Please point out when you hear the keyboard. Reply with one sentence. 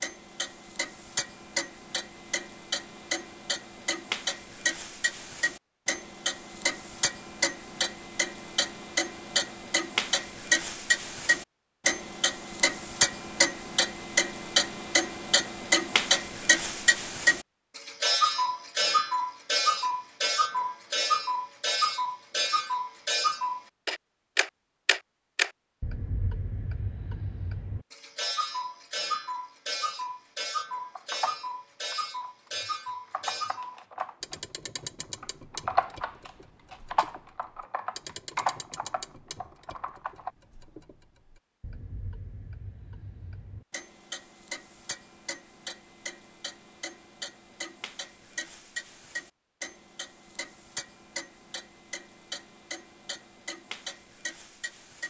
You can hear the keyboard from 30.9 to 32.5 s, from 33.1 to 34.4 s and from 35.2 to 40.3 s.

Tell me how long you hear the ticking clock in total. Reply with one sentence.
The ticking clock can be heard for 55 seconds in total.